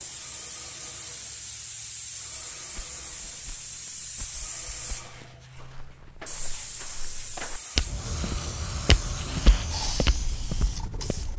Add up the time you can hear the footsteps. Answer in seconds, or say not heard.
9 s.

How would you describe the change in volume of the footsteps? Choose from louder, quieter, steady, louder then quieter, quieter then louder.
louder.